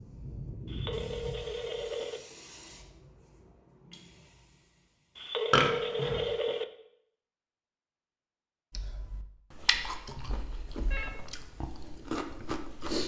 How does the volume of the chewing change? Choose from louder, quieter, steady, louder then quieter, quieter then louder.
quieter then louder.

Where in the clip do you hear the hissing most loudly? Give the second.
1 s.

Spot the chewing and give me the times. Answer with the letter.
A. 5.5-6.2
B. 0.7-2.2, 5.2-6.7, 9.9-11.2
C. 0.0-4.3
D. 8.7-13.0
D.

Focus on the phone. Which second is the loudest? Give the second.
6 s.